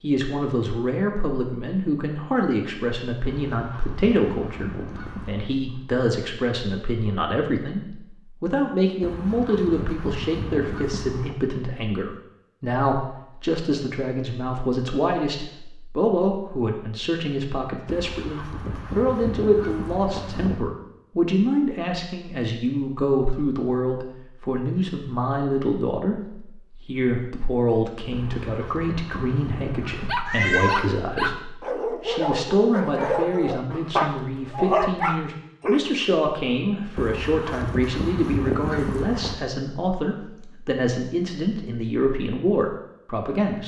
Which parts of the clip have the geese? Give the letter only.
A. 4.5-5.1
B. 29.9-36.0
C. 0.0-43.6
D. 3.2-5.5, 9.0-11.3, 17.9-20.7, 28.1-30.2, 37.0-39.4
D.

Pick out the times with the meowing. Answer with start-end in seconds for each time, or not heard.
30.2-30.9.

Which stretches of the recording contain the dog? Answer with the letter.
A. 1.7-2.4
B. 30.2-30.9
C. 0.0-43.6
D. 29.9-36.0
D.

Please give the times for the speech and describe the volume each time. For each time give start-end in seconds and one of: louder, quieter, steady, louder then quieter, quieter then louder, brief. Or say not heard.
0.0-43.6 steady.